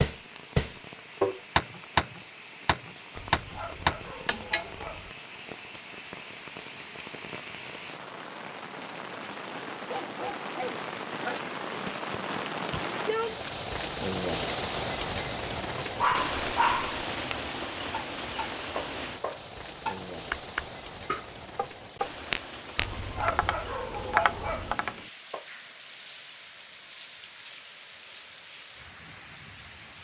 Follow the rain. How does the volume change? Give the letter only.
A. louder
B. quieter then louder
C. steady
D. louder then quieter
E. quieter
D.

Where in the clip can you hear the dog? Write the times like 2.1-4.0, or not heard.
3.1-5.1, 9.8-11.4, 16.0-17.1, 22.8-24.8.